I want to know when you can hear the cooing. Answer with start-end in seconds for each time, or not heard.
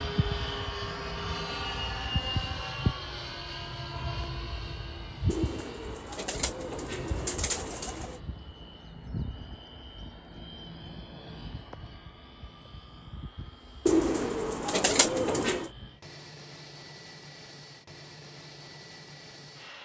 5.2-8.2, 13.8-15.7.